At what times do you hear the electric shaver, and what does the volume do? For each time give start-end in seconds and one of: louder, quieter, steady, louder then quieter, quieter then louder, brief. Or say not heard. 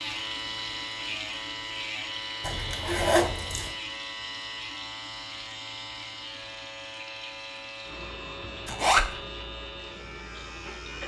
0.0-11.0 quieter.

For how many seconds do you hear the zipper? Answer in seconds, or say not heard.
2 s.